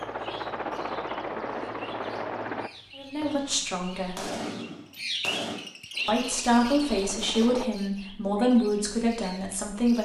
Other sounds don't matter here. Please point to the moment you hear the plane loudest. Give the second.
1 s.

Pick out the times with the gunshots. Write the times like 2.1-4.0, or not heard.
2.7-5.6.